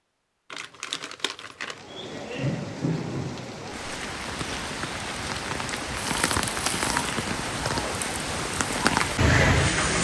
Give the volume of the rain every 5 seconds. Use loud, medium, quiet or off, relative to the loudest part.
medium, loud.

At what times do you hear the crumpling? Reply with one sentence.
The crumpling can be heard from 0.5 to 1.9 s and from 6.0 to 7.2 s.